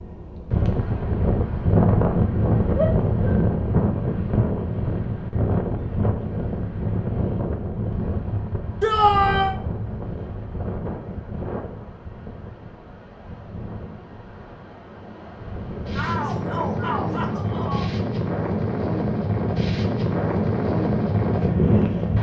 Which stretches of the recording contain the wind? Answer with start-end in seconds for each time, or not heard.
0.0-22.1.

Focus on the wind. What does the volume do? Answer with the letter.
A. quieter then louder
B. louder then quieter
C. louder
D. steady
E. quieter
A.